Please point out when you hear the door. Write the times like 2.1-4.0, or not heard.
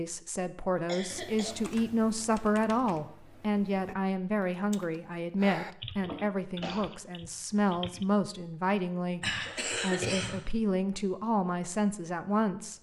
not heard.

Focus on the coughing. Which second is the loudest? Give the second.
10 s.